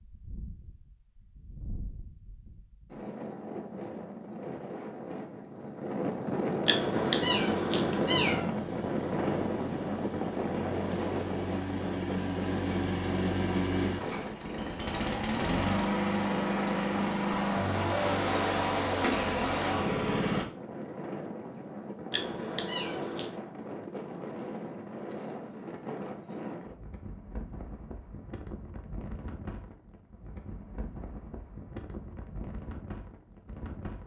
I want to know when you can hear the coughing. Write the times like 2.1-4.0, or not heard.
not heard.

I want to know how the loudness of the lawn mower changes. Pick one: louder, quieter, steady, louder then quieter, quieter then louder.
louder.